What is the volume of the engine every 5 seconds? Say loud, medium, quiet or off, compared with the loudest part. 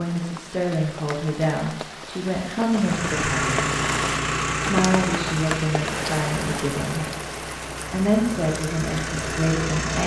loud, medium.